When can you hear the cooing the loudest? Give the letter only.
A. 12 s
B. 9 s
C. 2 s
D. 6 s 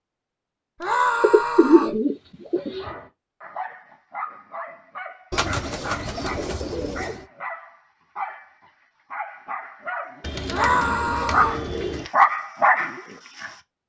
C.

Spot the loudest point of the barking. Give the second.
12 s.